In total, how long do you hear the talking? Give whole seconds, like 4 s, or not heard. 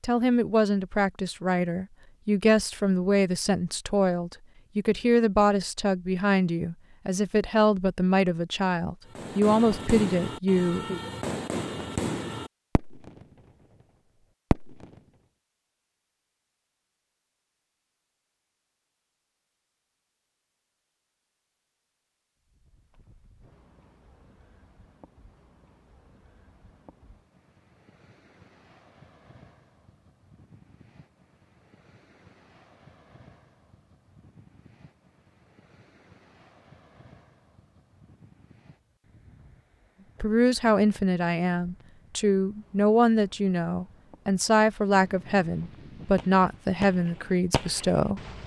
19 s.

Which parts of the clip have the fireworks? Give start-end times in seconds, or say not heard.
9.2-13.2, 14.5-15.0, 46.1-48.4.